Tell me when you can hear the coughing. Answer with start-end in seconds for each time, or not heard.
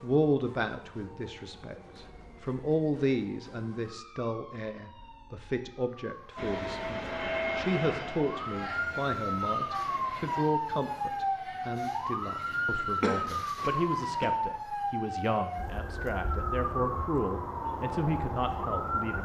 13.0-14.3.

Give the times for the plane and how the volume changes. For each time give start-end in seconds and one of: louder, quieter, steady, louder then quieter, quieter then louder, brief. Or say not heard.
6.3-10.4 quieter.